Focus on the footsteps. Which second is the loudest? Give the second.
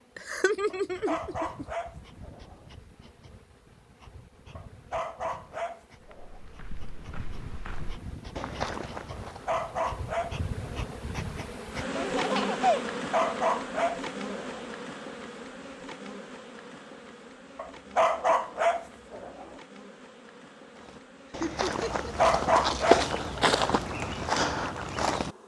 23 s.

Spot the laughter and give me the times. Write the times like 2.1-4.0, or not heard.
0.1-1.6, 11.9-12.8, 21.4-22.1.